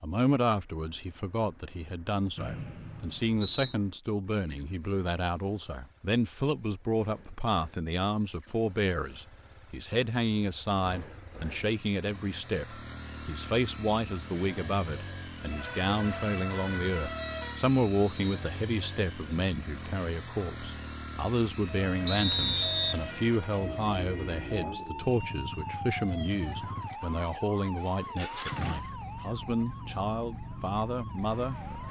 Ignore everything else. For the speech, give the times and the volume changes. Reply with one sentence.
The speech can be heard from 0.0 to 31.6 s, at a steady volume.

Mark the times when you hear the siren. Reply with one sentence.
The siren can be heard from 15.4 to 17.7 s and from 21.7 to 31.8 s.